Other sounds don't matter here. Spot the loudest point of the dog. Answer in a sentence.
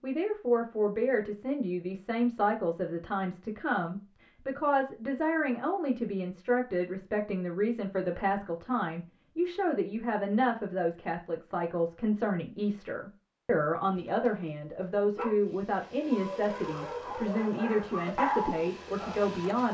The volume of the dog peaks at 18 seconds.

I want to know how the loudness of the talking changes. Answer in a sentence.
The loudness of the talking stays about the same.